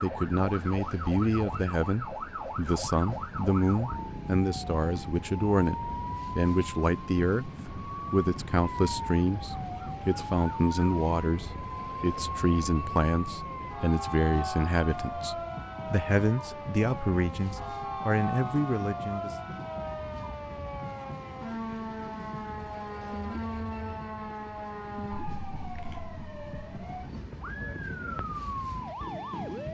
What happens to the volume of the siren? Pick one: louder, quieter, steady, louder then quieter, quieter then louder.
steady.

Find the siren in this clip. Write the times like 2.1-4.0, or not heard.
0.0-29.6.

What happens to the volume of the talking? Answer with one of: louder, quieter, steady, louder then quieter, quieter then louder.
steady.